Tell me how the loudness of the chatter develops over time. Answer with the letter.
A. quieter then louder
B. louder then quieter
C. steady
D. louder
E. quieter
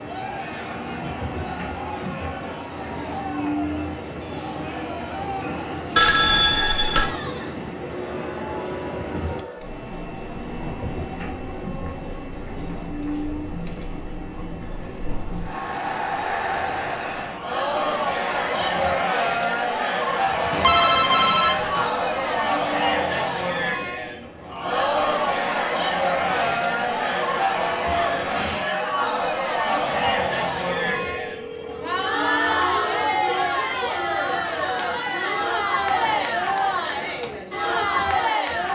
D.